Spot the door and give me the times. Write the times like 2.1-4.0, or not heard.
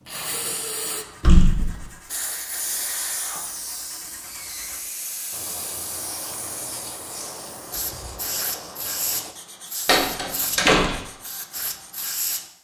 1.2-1.9, 9.8-11.0.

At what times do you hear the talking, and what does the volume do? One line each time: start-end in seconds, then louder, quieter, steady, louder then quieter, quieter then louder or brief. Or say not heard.
not heard.